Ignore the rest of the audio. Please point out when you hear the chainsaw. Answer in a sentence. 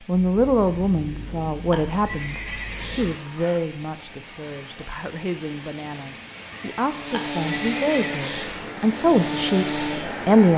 The chainsaw can be heard from 6.8 to 10.4 s.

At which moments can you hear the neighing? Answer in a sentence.
You can hear the neighing from 1.7 to 3.6 s and from 7.1 to 8.8 s.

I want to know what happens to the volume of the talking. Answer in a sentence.
The volume of the talking goes down, then up.